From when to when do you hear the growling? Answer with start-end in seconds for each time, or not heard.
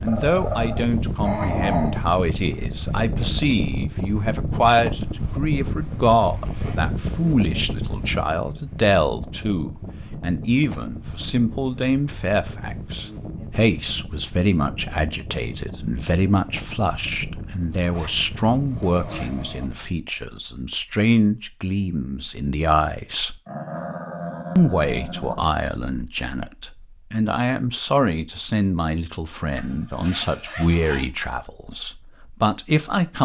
0.1-2.0, 18.6-19.7, 23.4-25.4.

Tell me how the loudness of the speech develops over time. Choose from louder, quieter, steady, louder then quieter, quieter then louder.
steady.